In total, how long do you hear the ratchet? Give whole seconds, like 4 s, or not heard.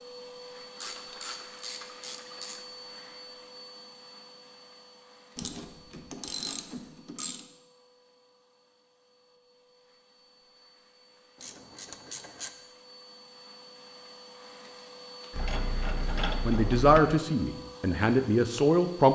7 s.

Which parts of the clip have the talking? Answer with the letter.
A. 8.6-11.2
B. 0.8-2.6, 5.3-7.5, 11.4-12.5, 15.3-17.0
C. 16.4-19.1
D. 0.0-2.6
C.